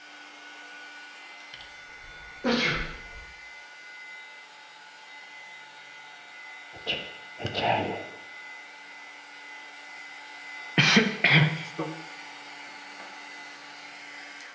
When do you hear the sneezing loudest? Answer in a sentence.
The loudest moment of the sneezing is at 11 seconds.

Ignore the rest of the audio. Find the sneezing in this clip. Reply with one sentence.
You can hear the sneezing from 1.5 to 3.2 s, from 6.8 to 8.0 s and from 10.8 to 11.9 s.